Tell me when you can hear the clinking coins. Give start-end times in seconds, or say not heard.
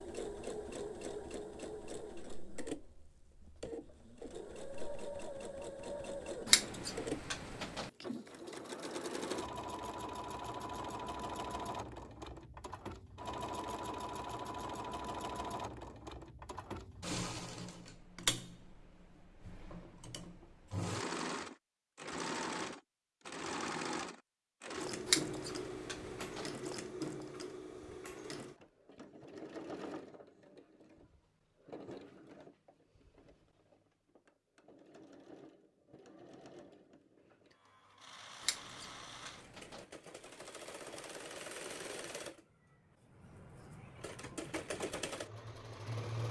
not heard.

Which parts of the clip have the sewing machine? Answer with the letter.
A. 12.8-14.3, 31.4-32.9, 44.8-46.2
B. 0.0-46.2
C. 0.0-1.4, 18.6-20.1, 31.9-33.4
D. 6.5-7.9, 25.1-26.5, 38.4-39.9
B.